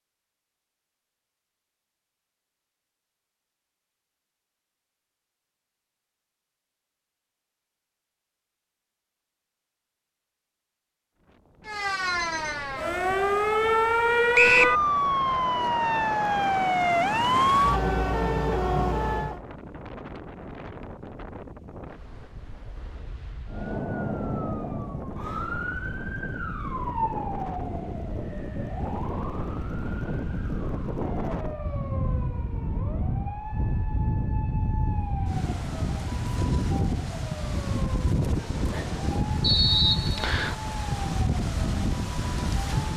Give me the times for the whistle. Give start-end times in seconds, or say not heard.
14.3-14.8, 39.4-40.5.